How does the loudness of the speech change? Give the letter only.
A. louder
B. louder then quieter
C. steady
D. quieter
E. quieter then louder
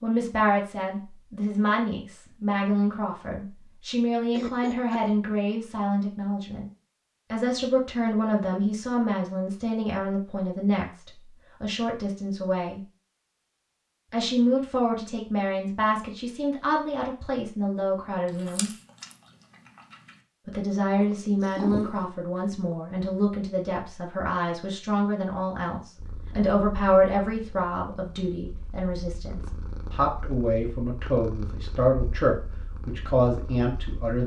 C.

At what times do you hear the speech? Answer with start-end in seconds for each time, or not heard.
0.0-6.7, 7.3-12.8, 14.1-18.7, 20.4-34.2.